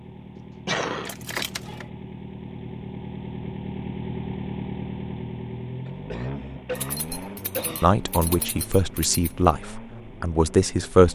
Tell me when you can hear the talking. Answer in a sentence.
You can hear the talking from 7.8 to 11.1 s.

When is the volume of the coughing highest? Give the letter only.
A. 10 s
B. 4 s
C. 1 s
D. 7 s
C.